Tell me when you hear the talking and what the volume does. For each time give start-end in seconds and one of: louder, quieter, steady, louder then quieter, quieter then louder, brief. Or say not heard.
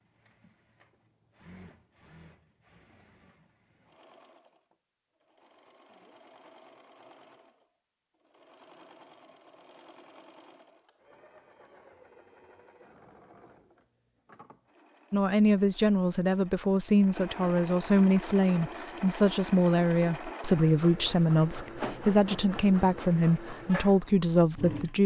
15.1-25.0 steady.